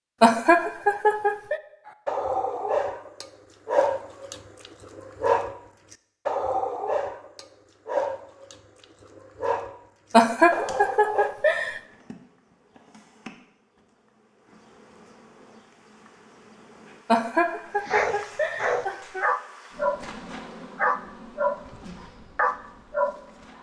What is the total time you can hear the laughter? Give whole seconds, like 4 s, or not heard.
5 s.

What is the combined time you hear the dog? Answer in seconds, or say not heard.
13 s.